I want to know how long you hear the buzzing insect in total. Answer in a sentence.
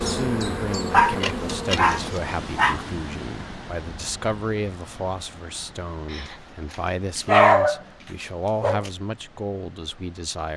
The buzzing insect can be heard for 2 seconds in total.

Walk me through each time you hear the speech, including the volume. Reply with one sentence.
The speech can be heard from 0.0 to 10.5 s, at a steady volume.